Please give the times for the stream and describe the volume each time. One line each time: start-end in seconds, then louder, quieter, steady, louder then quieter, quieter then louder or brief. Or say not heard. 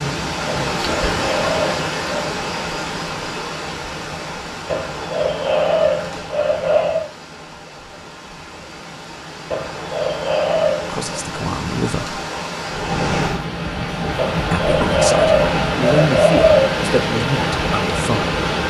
0.0-18.6 quieter then louder.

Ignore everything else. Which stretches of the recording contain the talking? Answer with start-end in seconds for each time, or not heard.
10.8-12.2, 14.5-18.4.